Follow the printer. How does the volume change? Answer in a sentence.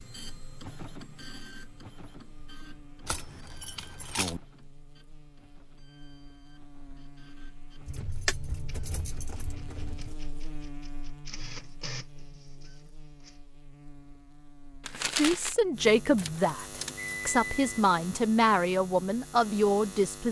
The volume of the printer goes down, then up.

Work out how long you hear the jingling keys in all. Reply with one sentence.
You can hear the jingling keys for 5 seconds altogether.